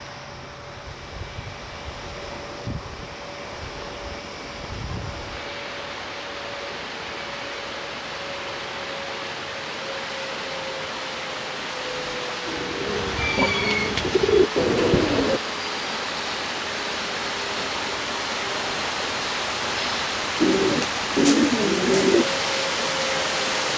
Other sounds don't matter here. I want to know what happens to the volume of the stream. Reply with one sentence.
The volume of the stream goes up.